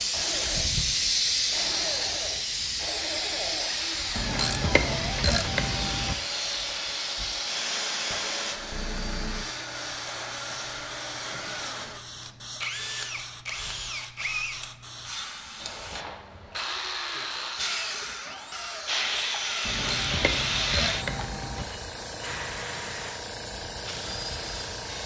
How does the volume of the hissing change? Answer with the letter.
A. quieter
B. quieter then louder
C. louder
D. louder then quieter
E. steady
B.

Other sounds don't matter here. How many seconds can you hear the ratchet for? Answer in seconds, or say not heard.
4 s.